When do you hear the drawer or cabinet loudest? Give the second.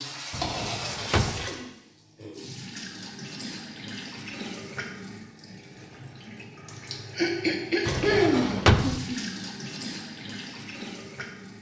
9 s.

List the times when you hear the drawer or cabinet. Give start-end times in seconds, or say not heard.
0.3-1.4, 7.8-9.0.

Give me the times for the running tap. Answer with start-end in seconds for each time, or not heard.
0.0-11.5.